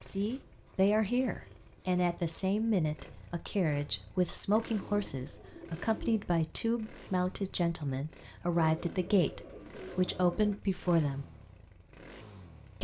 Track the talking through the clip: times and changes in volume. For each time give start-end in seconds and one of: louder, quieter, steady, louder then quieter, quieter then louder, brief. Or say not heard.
0.0-11.2 steady.